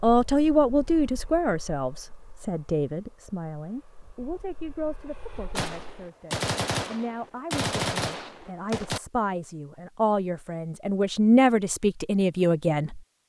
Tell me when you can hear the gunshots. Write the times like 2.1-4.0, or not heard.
5.5-9.0.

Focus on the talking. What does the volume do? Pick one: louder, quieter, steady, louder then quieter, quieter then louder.
quieter then louder.